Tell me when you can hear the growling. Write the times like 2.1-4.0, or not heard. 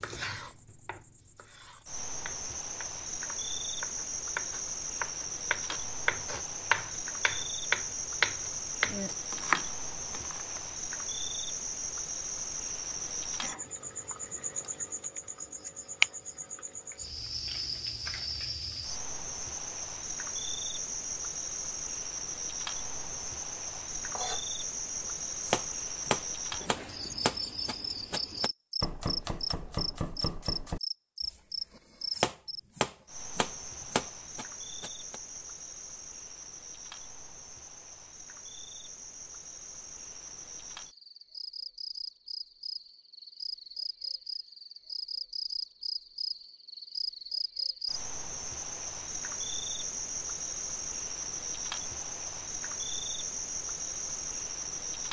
not heard.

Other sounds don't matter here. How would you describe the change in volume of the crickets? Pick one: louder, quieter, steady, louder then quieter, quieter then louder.
quieter then louder.